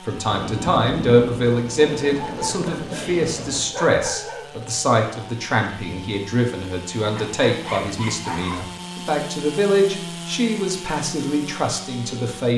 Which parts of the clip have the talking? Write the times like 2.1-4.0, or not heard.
0.0-12.5.